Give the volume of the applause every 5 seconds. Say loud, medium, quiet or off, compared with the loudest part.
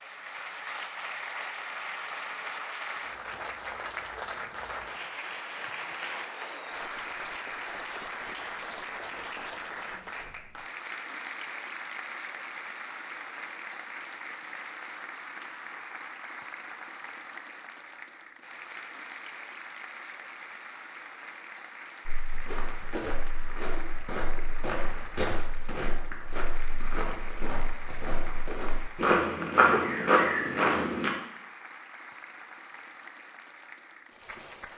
loud, loud, loud, medium, medium, medium, medium.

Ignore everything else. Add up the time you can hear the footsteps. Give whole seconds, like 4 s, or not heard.
9 s.